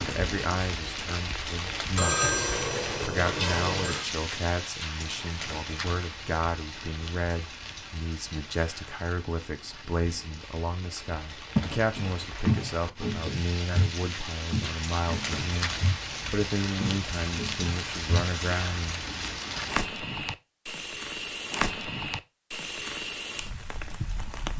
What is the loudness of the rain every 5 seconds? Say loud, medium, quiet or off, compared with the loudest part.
loud, medium, medium, loud, loud.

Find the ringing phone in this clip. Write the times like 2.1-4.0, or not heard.
1.9-4.0.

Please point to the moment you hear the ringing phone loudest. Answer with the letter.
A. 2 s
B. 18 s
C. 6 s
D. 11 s
A.